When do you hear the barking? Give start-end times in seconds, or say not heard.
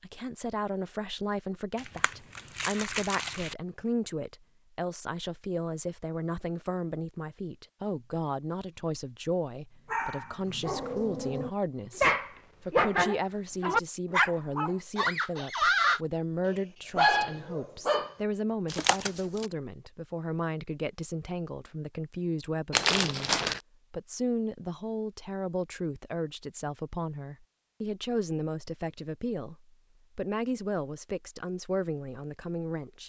9.9-18.1.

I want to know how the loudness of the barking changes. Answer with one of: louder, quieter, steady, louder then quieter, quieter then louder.
louder.